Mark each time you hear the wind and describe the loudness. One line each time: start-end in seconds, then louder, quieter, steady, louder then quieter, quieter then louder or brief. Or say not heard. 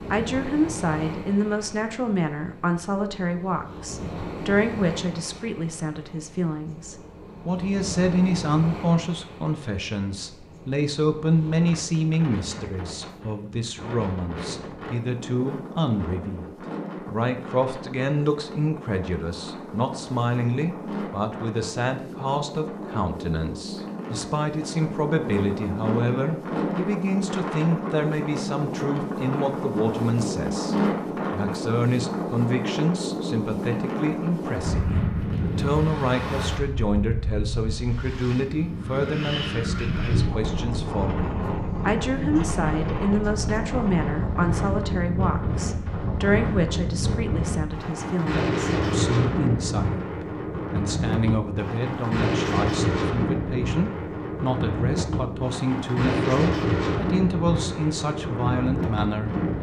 0.0-59.5 louder.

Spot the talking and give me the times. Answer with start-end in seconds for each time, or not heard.
0.0-16.4, 17.1-50.0, 50.7-59.5.